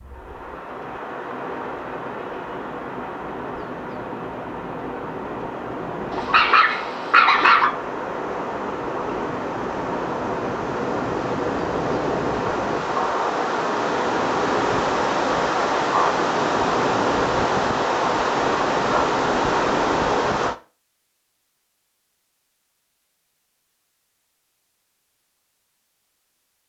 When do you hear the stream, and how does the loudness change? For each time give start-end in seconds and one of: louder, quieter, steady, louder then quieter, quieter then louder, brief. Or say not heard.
0.0-20.6 louder.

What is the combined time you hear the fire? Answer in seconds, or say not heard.
not heard.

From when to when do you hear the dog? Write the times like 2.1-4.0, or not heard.
6.1-7.7.